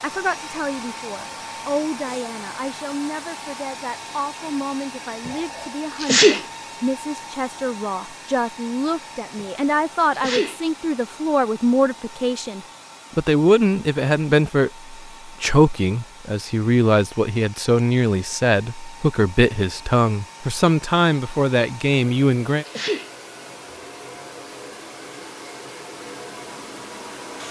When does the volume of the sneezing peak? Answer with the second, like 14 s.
6 s.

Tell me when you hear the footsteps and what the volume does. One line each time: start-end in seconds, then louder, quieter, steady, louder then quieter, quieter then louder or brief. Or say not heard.
not heard.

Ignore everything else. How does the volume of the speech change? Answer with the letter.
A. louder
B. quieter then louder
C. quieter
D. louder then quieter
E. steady
A.